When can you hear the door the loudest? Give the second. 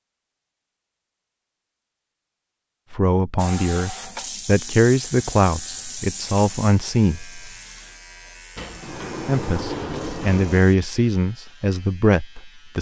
10 s.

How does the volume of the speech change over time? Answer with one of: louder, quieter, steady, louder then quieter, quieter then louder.
steady.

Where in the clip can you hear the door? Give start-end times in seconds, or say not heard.
8.6-10.7.